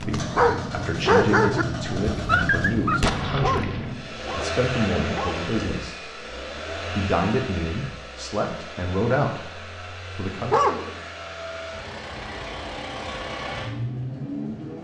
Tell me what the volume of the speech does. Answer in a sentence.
The volume of the speech stays about the same.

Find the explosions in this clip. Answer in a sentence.
The explosions can be heard from 3.0 to 4.0 s.